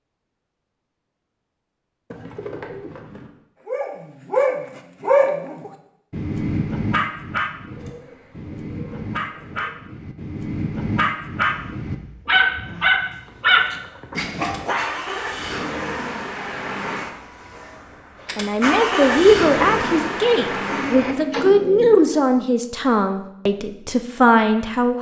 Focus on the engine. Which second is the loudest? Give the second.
19 s.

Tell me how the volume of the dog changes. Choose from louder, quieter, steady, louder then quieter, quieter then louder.
quieter then louder.